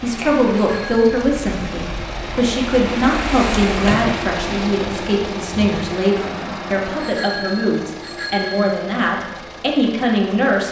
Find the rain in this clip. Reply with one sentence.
The rain can be heard from 0.0 to 7.1 s.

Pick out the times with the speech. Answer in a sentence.
The speech can be heard from 0.0 to 10.6 s.